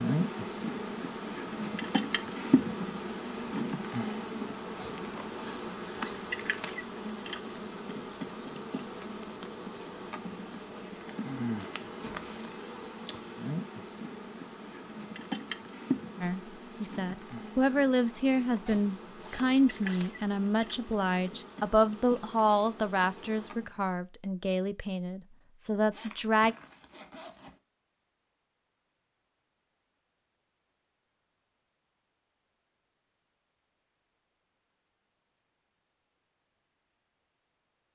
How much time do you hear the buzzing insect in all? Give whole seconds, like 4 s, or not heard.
24 s.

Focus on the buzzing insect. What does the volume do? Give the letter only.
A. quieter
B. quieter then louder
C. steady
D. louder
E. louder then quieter
A.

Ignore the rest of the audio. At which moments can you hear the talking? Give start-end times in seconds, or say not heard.
16.2-26.6.